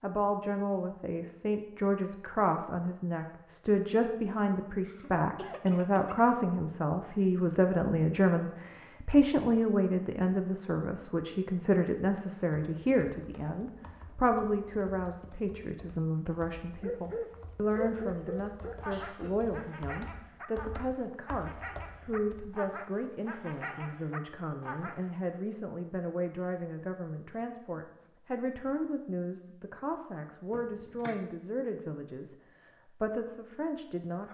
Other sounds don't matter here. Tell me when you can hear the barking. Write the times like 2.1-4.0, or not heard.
16.8-25.1.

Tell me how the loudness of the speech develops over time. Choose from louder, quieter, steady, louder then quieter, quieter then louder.
quieter.